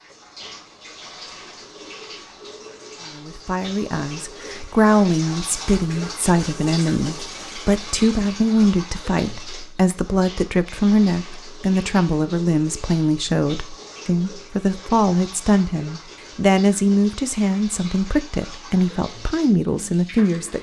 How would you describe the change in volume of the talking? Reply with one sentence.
The volume of the talking stays about the same.